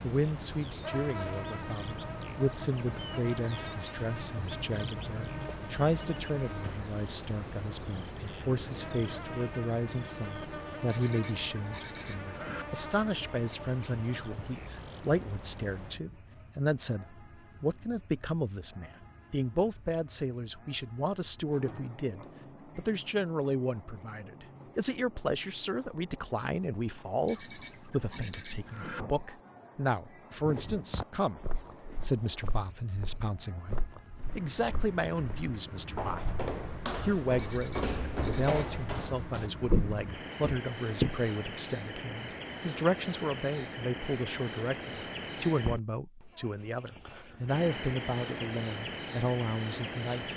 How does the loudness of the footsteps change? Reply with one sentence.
The loudness of the footsteps goes up.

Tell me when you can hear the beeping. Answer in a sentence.
You can hear the beeping from 10.9 to 12.7 s, from 27.2 to 29.1 s and from 37.4 to 38.8 s.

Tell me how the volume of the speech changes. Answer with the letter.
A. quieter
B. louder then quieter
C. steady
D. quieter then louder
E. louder
C.